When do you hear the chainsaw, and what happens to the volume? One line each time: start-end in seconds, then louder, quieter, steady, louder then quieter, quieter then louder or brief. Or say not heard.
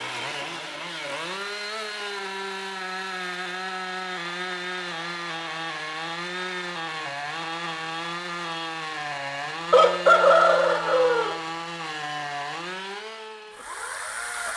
0.0-14.5 steady.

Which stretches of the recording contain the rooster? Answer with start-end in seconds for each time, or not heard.
9.7-11.3.